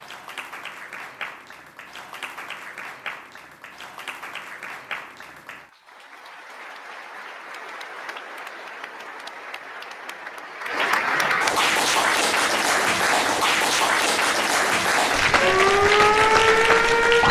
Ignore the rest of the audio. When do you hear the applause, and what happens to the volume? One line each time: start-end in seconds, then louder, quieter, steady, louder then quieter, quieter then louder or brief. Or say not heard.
0.0-17.2 louder.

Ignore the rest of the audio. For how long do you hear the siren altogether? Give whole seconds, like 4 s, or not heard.
2 s.